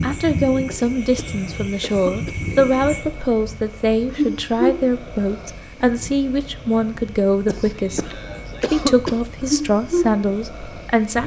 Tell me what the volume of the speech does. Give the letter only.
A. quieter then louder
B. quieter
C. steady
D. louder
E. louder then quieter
C.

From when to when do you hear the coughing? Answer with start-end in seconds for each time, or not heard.
0.7-2.4, 7.5-9.2.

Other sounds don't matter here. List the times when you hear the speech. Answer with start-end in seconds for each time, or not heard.
0.0-11.2.